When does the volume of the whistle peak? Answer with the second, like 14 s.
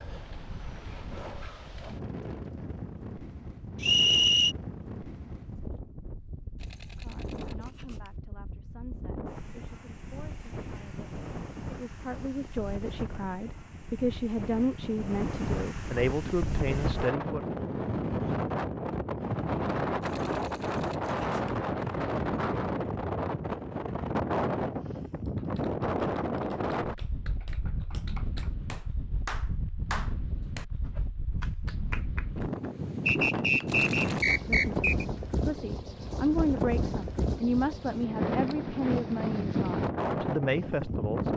4 s.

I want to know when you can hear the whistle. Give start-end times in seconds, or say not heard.
3.8-4.5, 33.0-35.0.